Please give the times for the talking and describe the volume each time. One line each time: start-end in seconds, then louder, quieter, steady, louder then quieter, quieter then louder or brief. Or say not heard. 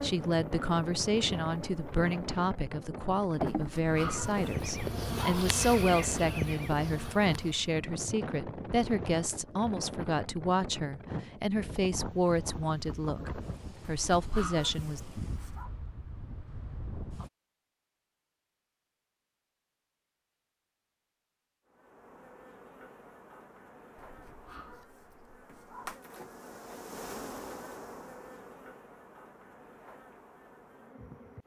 0.0-15.0 steady.